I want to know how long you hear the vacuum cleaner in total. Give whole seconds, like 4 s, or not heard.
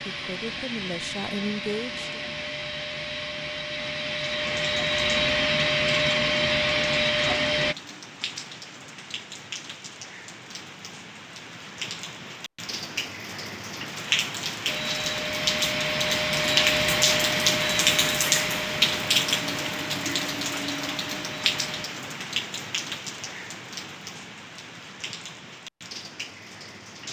15 s.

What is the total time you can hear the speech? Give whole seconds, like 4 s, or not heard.
2 s.